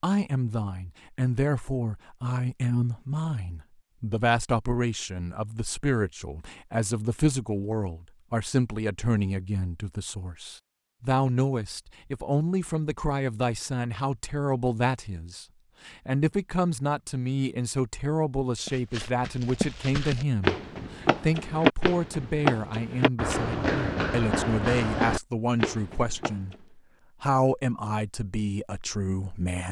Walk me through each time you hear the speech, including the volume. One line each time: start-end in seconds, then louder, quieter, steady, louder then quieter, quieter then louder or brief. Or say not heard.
0.0-29.6 steady.